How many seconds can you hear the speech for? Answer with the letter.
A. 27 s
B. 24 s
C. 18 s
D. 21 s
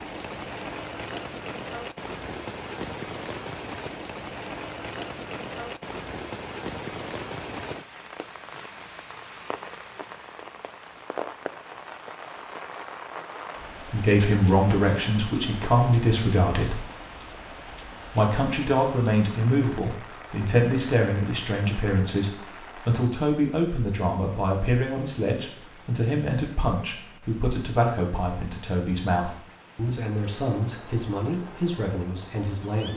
C.